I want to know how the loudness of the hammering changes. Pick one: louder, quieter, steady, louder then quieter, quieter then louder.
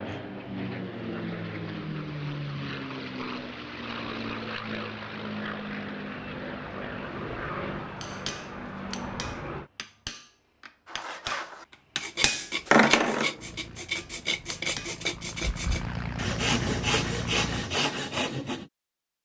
louder then quieter.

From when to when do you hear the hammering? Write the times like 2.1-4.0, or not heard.
8.0-14.9.